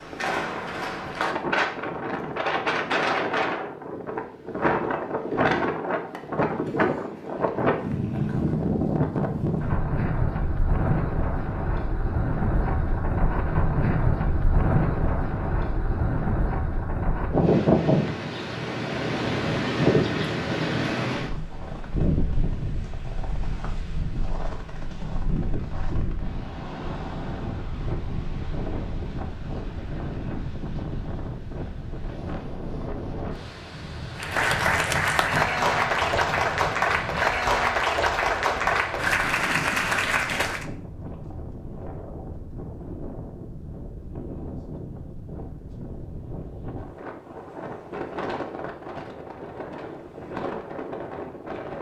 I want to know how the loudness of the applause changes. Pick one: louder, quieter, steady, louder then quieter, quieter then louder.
steady.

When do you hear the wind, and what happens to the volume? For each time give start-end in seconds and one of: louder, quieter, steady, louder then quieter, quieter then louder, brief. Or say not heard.
0.0-51.7 quieter.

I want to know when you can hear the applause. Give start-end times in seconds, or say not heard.
34.1-40.6.